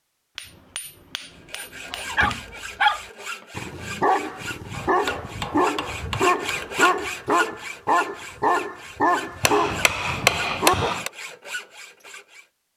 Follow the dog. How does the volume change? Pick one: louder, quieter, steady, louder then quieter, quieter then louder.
steady.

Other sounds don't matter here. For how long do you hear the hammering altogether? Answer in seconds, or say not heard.
6 s.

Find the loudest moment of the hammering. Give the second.
10 s.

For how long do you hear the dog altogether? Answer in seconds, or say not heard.
9 s.